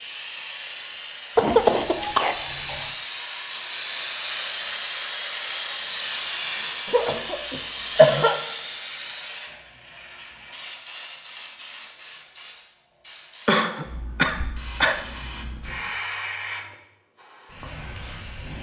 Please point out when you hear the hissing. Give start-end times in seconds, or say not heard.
0.0-18.5.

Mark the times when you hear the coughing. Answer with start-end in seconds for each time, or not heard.
1.4-3.0, 6.8-8.3, 13.4-15.0.